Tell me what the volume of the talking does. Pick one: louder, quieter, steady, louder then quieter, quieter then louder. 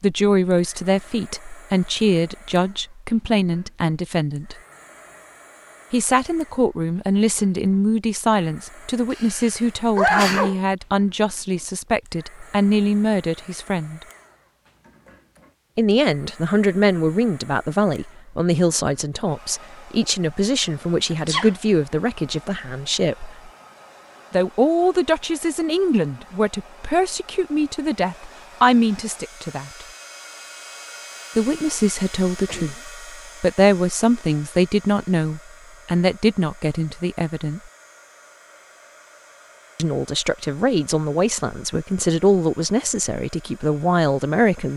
steady.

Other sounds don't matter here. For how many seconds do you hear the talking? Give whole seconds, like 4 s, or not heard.
37 s.